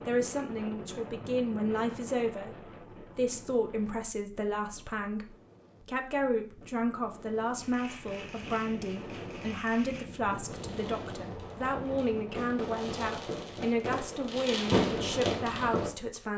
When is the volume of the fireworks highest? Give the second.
15 s.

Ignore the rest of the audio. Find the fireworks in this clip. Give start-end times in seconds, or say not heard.
7.5-15.9.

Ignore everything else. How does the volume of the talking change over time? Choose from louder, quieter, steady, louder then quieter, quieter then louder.
steady.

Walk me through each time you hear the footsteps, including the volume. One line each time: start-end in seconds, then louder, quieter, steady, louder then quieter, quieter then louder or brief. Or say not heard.
not heard.